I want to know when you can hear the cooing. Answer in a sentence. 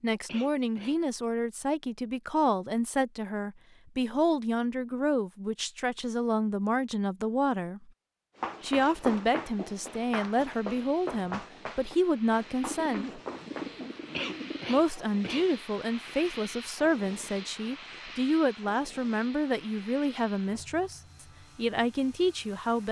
The cooing can be heard from 12.6 to 14.7 s.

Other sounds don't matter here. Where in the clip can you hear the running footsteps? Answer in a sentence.
You can hear the running footsteps from 8.3 to 13.9 s.